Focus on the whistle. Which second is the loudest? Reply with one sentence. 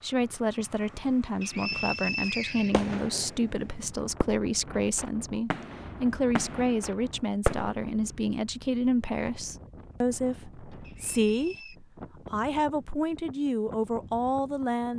The loudest moment of the whistle is at 2 seconds.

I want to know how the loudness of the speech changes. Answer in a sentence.
The loudness of the speech stays about the same.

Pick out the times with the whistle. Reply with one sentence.
The whistle can be heard from 1.4 to 2.9 s and from 10.8 to 11.8 s.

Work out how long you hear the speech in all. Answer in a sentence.
The speech can be heard for 15 seconds in total.